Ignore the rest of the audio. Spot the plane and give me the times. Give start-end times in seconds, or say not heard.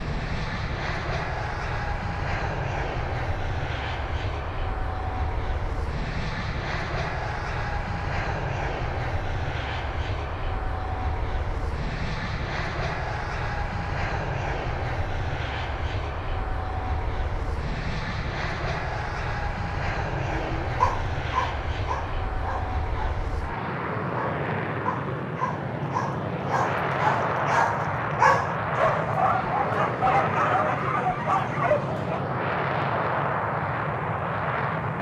0.0-34.9.